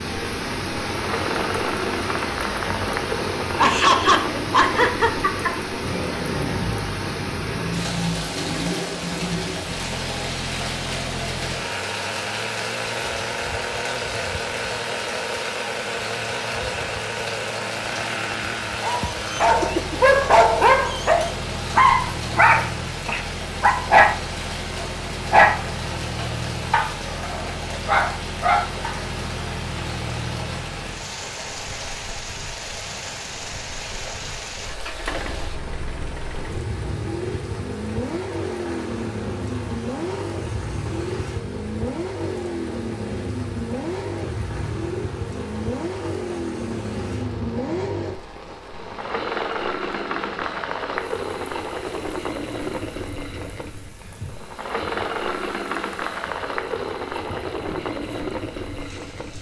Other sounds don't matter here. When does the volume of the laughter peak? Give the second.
4 s.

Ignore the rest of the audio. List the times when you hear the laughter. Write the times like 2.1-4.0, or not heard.
3.5-5.5.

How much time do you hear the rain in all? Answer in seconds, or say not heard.
59 s.